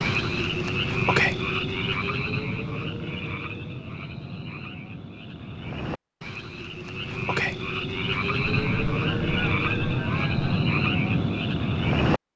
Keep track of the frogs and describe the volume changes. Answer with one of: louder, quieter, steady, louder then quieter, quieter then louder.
quieter then louder.